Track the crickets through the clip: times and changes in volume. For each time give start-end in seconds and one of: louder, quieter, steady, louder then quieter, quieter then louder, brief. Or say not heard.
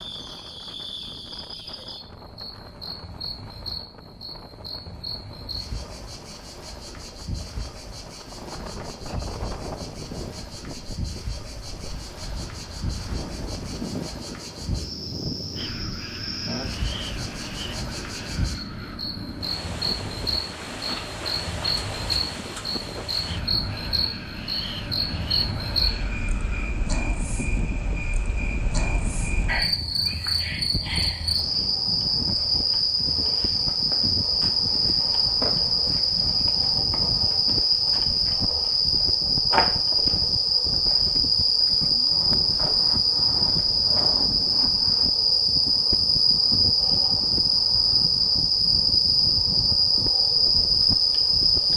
0.0-51.7 louder.